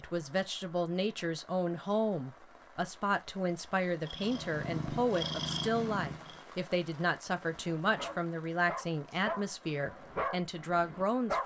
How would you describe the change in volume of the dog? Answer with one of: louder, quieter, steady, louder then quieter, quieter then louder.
louder then quieter.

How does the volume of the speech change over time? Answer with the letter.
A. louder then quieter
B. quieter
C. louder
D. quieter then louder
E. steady
E.